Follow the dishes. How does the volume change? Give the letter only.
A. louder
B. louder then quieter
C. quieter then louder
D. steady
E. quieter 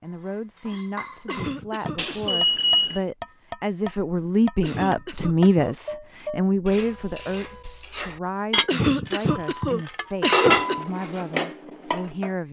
A.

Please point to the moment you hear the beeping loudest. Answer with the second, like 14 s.
3 s.